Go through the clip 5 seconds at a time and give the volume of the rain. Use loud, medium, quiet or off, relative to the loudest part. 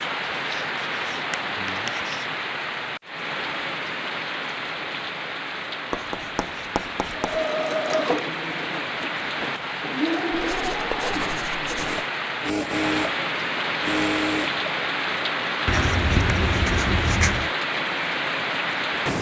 loud, medium, loud, loud.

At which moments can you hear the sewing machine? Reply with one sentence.
The sewing machine can be heard from 7.2 to 14.7 s.